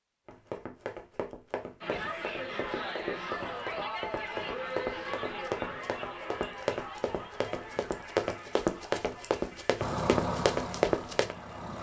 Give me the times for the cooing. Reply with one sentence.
The cooing can't be heard in this clip.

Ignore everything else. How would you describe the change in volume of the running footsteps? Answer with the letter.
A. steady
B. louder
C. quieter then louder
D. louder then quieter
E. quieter
B.